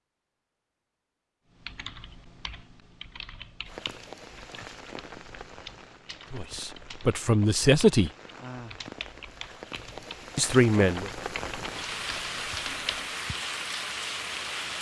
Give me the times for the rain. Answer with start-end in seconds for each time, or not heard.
3.6-14.7.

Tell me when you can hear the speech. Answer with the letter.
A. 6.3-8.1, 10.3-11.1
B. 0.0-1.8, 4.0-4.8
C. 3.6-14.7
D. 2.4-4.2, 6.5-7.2
A.